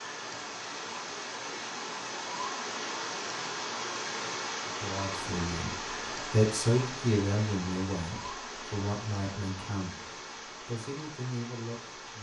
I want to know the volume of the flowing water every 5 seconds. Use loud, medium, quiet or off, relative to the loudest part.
loud, loud, medium.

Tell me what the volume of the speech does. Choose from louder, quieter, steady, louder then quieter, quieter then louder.
quieter.